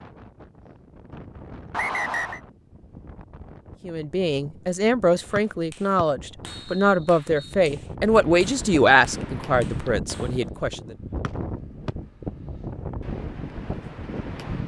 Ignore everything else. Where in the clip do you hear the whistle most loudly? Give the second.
2 s.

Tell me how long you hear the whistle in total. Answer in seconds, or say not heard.
4 s.